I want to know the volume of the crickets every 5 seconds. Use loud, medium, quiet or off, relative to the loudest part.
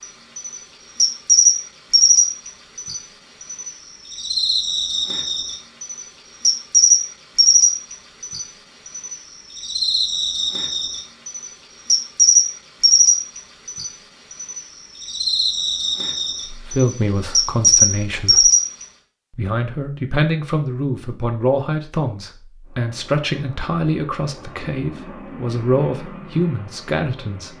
loud, loud, loud, loud, off, off.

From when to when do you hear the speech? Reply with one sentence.
The speech can be heard from 16.5 to 18.5 s and from 19.3 to 27.5 s.